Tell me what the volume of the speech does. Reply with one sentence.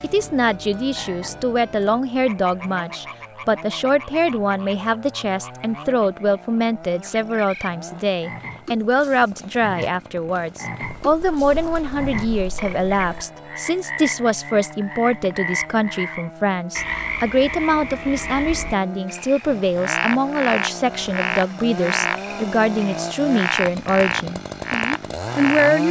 The volume of the speech stays about the same.